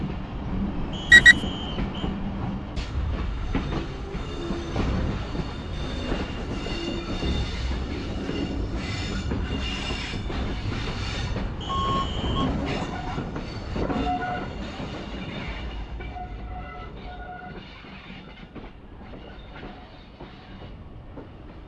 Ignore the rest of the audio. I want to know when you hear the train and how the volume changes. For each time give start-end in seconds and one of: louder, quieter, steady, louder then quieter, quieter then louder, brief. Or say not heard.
0.0-21.6 quieter.